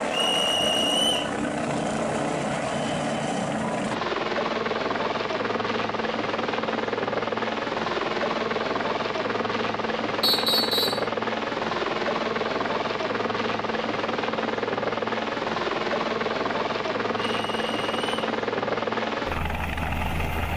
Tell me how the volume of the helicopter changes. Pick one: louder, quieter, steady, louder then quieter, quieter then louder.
steady.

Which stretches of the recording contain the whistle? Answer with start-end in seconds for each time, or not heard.
0.1-1.4, 10.2-11.1, 17.2-18.1.